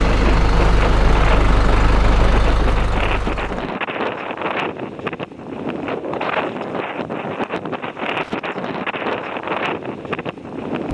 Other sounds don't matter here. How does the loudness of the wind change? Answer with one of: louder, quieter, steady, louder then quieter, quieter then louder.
steady.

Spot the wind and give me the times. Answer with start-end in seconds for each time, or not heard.
0.0-10.8.